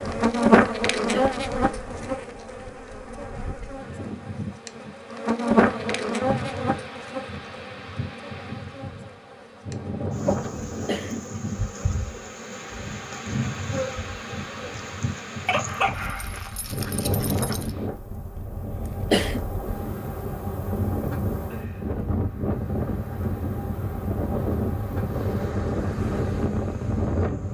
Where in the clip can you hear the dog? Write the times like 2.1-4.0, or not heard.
15.4-17.7.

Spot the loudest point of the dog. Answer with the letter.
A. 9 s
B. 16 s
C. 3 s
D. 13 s
B.